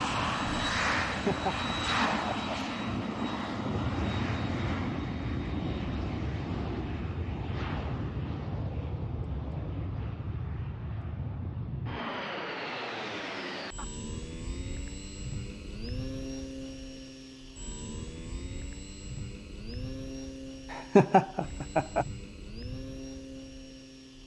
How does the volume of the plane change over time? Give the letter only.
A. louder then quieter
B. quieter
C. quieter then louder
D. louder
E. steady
B.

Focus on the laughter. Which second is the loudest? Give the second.
21 s.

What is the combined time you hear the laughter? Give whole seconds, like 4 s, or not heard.
3 s.